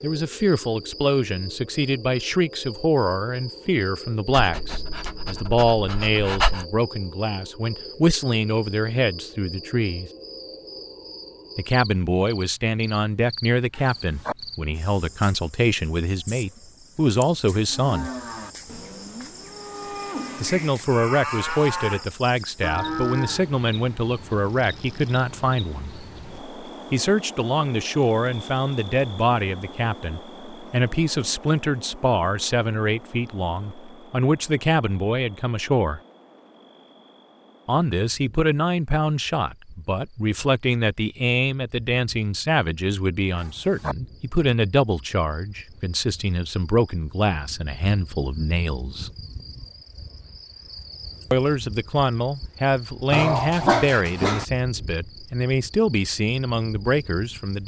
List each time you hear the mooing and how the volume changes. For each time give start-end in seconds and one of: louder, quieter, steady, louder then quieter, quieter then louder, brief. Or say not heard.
17.6-23.4 louder.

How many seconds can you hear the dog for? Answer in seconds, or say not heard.
4 s.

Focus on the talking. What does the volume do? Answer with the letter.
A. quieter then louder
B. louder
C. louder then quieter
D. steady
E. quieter
D.